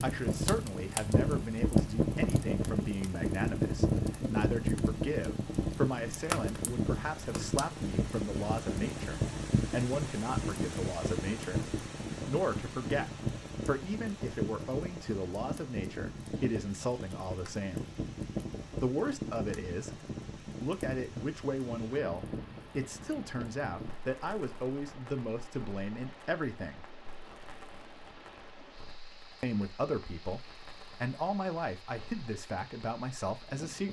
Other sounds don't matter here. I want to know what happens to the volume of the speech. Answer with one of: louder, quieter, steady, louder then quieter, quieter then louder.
steady.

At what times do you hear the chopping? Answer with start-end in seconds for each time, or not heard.
not heard.